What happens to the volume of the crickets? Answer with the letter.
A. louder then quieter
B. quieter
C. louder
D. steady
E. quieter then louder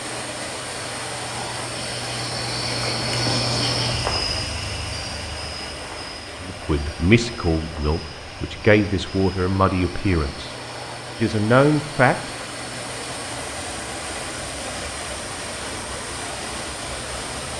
B.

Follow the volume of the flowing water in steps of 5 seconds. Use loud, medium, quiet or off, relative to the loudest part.
loud, medium, loud, loud.